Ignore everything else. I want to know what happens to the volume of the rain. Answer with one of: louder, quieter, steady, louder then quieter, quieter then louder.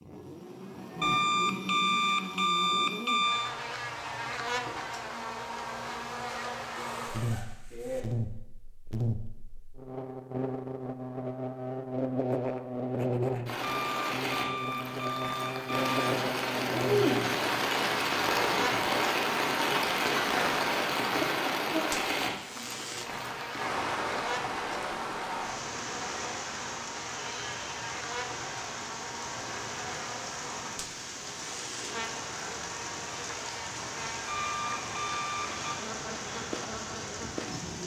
quieter.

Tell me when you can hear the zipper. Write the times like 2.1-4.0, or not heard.
6.8-8.1.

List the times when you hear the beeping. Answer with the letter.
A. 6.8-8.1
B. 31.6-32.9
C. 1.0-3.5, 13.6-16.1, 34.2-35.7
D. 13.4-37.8
C.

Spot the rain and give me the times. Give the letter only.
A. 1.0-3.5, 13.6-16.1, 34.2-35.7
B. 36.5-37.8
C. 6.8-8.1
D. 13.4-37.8
D.